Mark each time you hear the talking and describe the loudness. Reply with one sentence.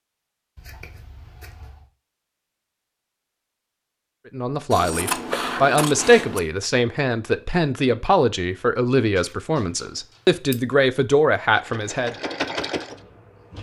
The talking can be heard from 4.3 to 12.2 s, at a steady volume.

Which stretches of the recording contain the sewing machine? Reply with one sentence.
The sewing machine can be heard from 11.5 to 13.5 s.